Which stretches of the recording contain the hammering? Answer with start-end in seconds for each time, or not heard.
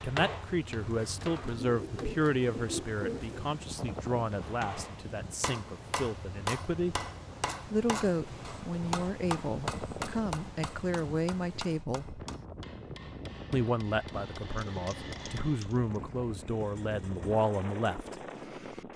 0.0-1.6, 4.3-15.7.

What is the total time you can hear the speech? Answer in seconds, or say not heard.
16 s.